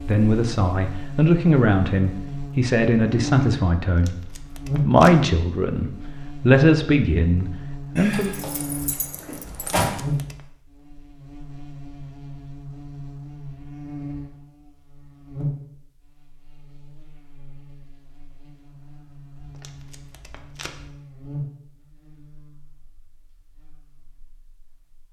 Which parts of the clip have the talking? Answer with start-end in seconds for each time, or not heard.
0.1-8.3.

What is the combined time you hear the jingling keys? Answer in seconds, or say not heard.
2 s.